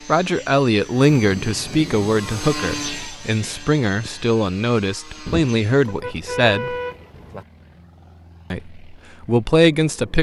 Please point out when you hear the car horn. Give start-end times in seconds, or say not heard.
5.2-7.5.